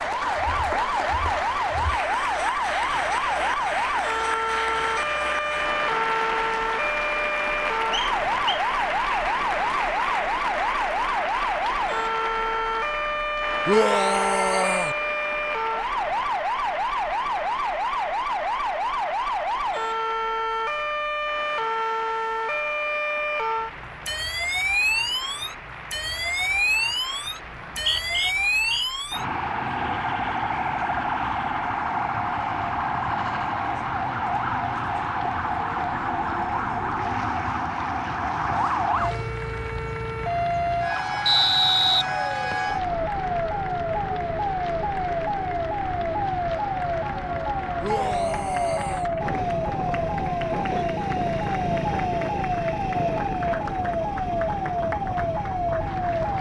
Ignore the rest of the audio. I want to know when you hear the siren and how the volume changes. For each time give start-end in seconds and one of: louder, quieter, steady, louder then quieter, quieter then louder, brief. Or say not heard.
0.0-56.3 steady.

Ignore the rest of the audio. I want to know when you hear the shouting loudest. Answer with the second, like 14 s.
14 s.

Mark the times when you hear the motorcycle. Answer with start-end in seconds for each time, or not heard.
49.2-56.3.